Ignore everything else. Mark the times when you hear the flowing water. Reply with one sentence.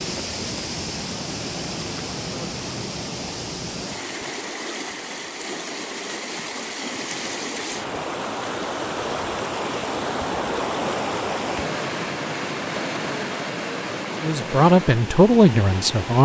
You can hear the flowing water from 0.0 to 16.2 s.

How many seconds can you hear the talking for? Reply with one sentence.
You can hear the talking for 2 seconds altogether.